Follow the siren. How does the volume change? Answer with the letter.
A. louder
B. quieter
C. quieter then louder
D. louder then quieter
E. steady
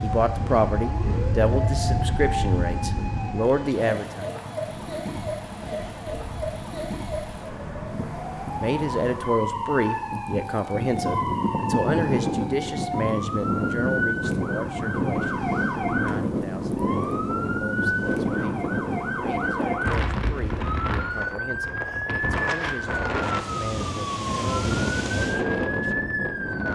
E.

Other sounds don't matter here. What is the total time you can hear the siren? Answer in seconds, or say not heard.
27 s.